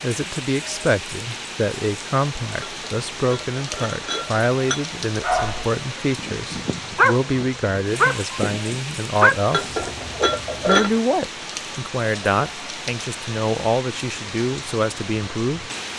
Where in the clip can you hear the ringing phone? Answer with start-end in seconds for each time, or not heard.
not heard.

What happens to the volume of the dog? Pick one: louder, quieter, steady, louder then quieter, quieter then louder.
louder then quieter.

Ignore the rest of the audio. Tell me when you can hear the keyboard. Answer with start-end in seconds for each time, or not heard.
not heard.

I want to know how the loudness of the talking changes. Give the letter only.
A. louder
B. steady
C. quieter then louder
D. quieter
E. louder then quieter
B.